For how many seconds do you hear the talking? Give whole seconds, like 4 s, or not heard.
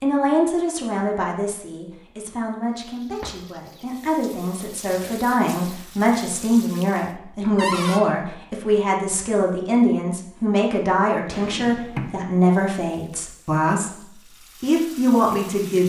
16 s.